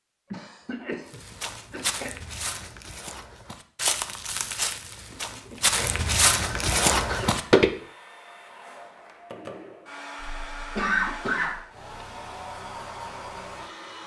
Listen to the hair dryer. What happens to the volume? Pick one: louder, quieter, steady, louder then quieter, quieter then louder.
louder.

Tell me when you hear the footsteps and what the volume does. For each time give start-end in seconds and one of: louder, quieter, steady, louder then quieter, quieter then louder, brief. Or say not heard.
1.1-7.7 quieter then louder.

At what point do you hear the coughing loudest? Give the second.
11 s.